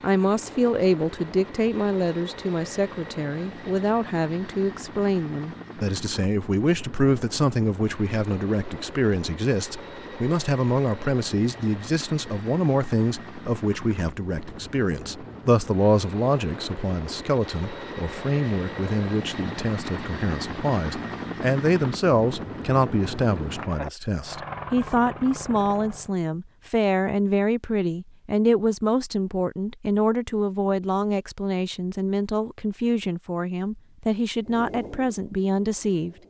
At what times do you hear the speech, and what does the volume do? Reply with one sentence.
You can hear the speech from 0.0 to 36.1 s, at a steady volume.